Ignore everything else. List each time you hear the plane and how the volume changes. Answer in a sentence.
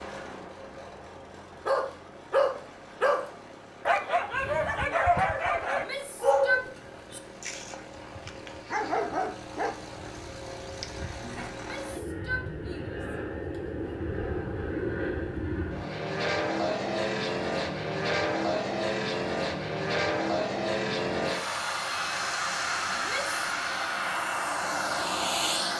The plane can be heard from 0.0 to 25.7 s, getting louder.